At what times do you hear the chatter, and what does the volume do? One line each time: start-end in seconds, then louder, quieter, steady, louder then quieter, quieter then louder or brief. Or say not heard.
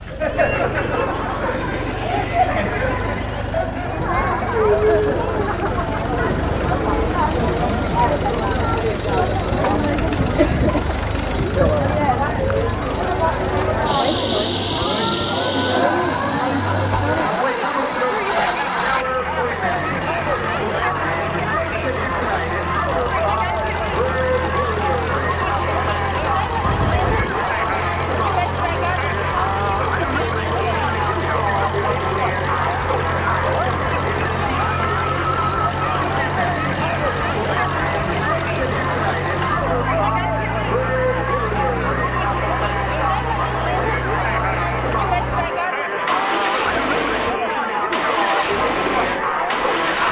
0.0-50.0 steady.